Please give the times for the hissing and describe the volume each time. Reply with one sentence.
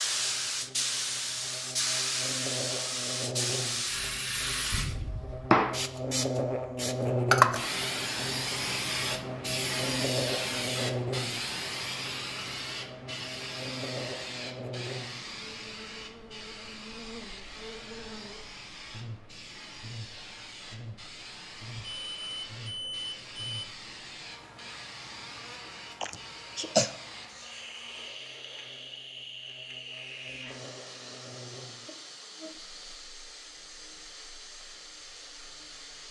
You can hear the hissing from 0.0 to 36.0 s, getting quieter.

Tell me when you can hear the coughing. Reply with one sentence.
The coughing can be heard from 26.0 to 26.9 s.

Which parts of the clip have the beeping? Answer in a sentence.
You can hear the beeping from 21.8 to 23.6 s.